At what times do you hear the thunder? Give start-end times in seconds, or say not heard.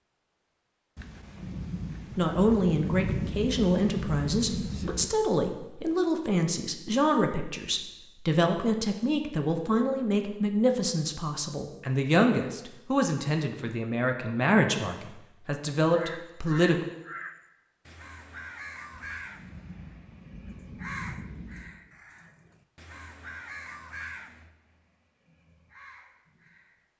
0.9-5.1, 18.9-21.8.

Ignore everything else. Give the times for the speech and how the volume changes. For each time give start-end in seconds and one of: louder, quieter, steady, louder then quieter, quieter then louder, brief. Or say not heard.
2.1-16.8 steady.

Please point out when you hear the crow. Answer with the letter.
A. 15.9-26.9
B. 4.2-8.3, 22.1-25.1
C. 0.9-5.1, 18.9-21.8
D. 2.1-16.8
A.